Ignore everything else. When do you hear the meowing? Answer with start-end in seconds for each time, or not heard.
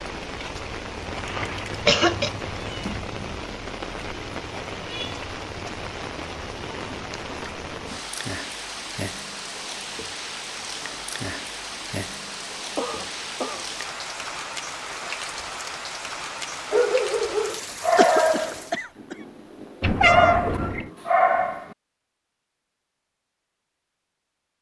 1.1-3.5, 19.8-20.9.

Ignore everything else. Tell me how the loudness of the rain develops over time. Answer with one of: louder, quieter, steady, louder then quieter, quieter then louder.
steady.